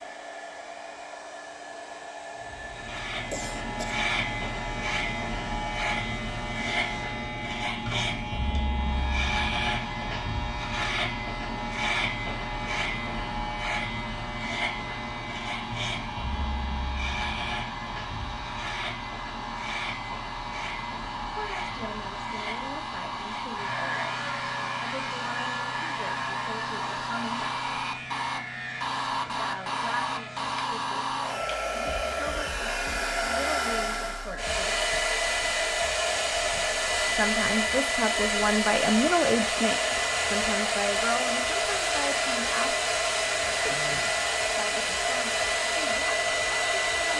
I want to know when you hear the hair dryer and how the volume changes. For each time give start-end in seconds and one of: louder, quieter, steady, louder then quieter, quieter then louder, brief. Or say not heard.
0.0-47.1 louder.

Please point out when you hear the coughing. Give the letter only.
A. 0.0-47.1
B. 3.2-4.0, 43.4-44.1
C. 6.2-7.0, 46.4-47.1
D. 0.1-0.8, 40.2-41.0
B.